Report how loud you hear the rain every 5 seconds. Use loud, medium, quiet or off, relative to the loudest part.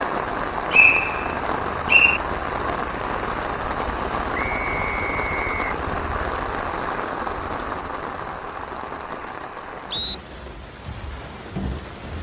loud, loud, medium.